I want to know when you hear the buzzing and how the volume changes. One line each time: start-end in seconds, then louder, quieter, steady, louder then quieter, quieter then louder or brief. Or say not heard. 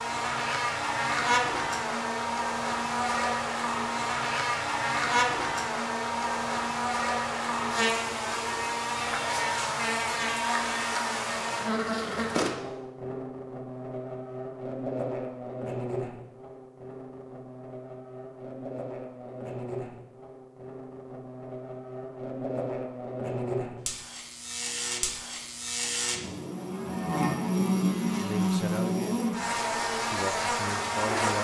0.0-31.3 quieter then louder.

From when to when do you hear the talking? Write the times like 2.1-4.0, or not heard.
28.1-29.3, 30.1-31.3.